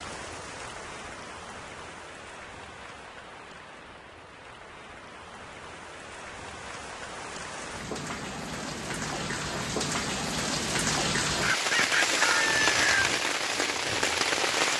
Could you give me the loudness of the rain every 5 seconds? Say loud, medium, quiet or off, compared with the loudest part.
quiet, medium, loud.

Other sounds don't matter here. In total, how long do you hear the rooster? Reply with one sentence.
You can hear the rooster for 2 seconds altogether.